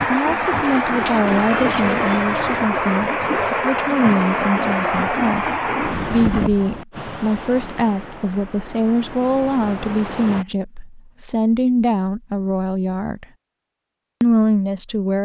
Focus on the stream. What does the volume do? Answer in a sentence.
The loudness of the stream goes down.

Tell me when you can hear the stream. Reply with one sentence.
You can hear the stream from 0.0 to 10.4 s.